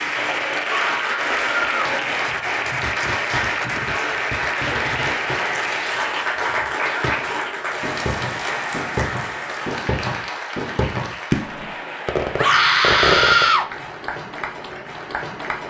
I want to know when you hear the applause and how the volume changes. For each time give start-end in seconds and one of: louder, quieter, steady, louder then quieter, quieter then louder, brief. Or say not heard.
0.0-15.6 quieter.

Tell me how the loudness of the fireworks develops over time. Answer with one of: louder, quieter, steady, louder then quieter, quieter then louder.
louder.